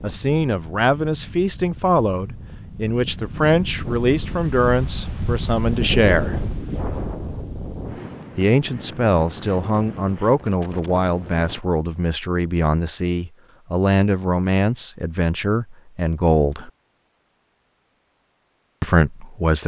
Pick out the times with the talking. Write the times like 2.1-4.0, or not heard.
0.0-6.3, 8.3-16.7, 18.8-19.6.